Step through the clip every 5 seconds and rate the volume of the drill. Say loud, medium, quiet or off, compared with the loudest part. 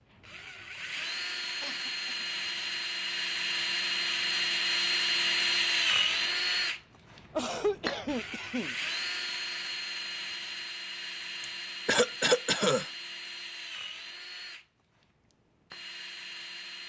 loud, loud, medium, quiet.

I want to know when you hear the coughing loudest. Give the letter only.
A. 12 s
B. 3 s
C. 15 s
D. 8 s
A.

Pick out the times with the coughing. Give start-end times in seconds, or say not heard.
1.6-2.1, 7.3-8.8, 11.4-12.8.